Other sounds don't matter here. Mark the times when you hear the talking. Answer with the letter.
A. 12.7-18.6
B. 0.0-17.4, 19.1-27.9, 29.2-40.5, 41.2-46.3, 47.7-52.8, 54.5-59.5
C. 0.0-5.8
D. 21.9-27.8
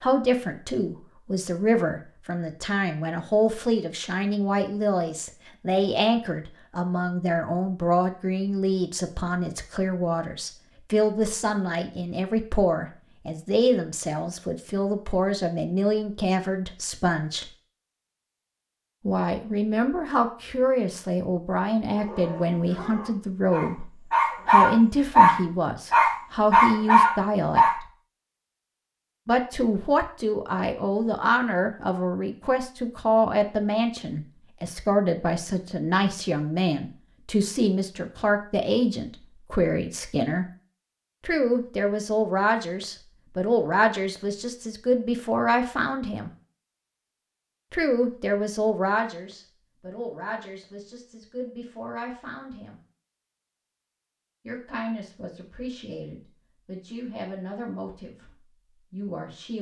B.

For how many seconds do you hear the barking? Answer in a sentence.
You can hear the barking for 6 seconds altogether.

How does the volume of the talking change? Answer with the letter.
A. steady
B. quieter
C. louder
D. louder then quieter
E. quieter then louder
B.